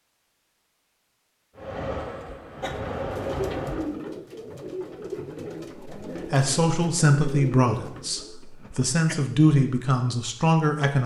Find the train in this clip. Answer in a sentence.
You can hear the train from 1.6 to 4.0 s.